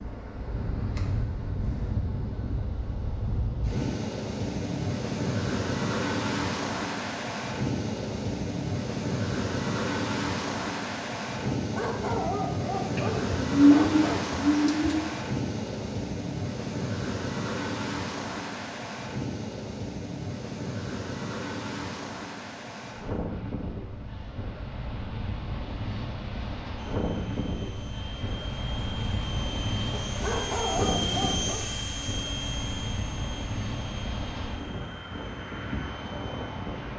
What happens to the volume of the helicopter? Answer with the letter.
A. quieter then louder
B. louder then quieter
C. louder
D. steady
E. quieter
B.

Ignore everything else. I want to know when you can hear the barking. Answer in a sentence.
You can hear the barking from 11.6 to 14.2 s and from 29.9 to 31.6 s.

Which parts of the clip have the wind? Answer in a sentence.
You can hear the wind from 0.0 to 36.9 s.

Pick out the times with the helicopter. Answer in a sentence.
The helicopter can be heard from 26.8 to 36.9 s.